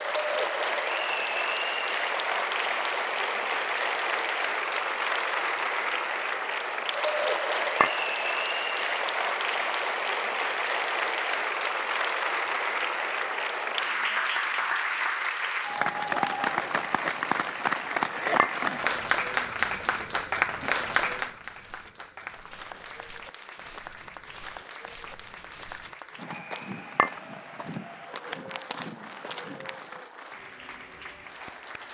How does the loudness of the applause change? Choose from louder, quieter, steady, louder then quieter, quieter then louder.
quieter.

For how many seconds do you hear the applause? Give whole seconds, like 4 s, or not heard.
32 s.